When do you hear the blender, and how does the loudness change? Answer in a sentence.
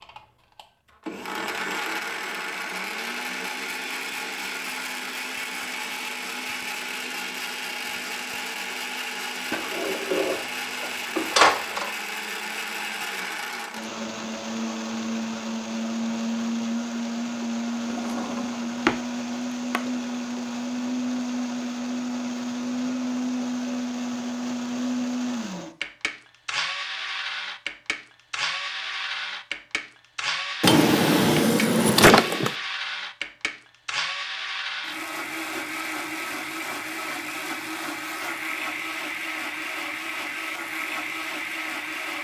The blender can be heard from 0.0 to 42.1 s, at a steady volume.